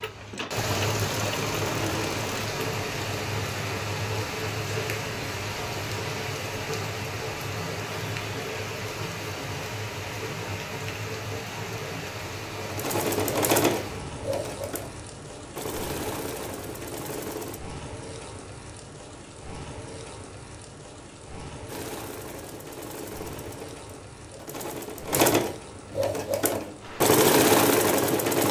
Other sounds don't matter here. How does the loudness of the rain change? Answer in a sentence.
The volume of the rain goes down.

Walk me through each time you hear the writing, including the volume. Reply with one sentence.
The writing can't be heard in this clip.